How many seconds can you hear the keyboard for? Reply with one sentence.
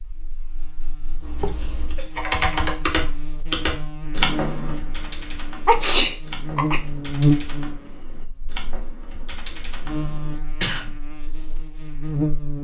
You can hear the keyboard for 9 seconds altogether.